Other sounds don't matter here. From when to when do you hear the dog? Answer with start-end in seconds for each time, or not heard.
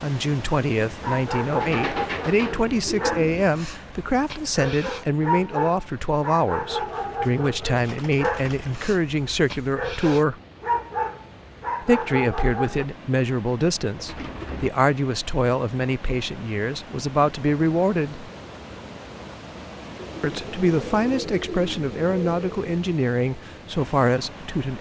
1.0-12.8.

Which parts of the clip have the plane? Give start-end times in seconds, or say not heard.
not heard.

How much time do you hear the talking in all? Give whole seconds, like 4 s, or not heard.
21 s.